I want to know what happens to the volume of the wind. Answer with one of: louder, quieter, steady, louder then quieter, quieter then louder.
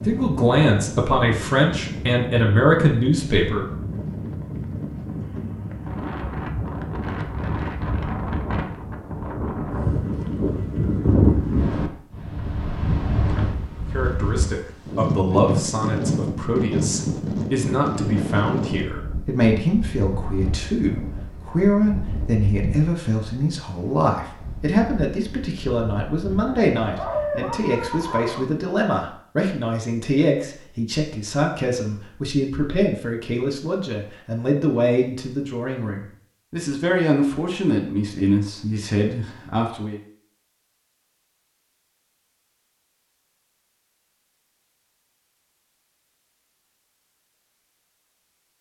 louder then quieter.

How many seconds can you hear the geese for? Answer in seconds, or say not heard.
not heard.